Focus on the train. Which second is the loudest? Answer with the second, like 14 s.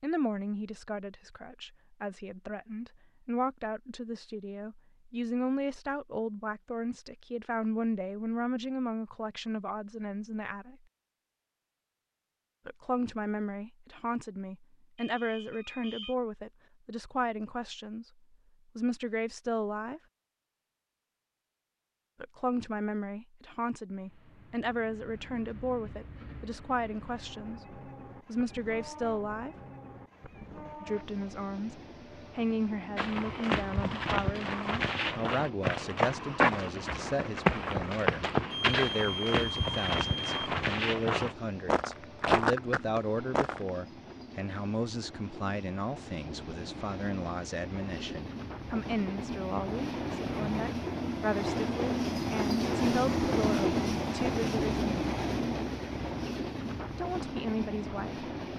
53 s.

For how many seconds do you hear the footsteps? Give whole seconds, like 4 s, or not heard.
11 s.